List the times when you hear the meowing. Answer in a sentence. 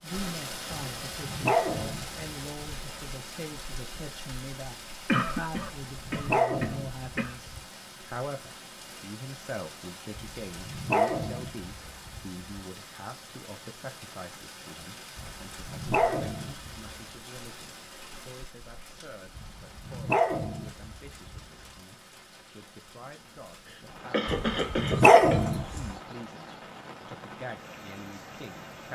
You can't hear the meowing here.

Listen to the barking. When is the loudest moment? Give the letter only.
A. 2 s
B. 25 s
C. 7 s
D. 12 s
B.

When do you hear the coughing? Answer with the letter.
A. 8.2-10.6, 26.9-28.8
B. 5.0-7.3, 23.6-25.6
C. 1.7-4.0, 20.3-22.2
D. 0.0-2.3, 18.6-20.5
B.